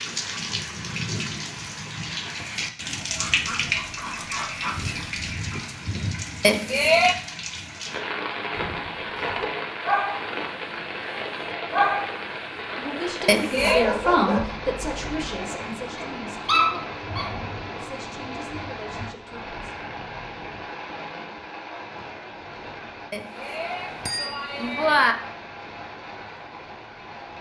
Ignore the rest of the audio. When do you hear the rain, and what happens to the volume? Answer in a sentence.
You can hear the rain from 0.0 to 27.3 s, getting quieter.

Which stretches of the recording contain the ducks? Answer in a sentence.
You can hear the ducks from 3.1 to 5.6 s.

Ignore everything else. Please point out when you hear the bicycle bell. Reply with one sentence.
The bicycle bell can be heard from 6.4 to 7.2 s, from 13.2 to 13.8 s and from 23.1 to 25.1 s.